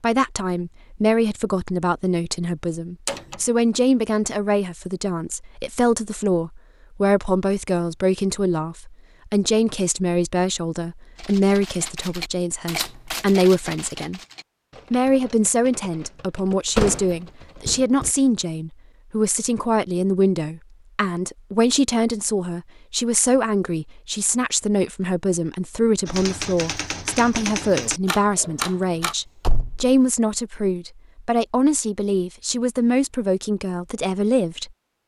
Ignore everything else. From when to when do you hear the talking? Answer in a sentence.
You can hear the talking from 0.0 to 14.2 s and from 14.9 to 34.7 s.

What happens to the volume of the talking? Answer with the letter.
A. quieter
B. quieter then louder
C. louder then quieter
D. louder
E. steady
E.